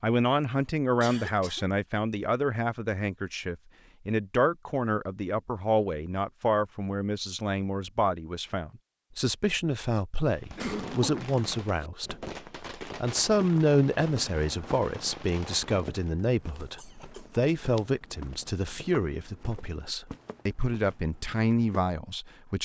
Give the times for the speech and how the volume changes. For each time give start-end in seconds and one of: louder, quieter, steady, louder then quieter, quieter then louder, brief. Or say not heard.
0.0-22.6 steady.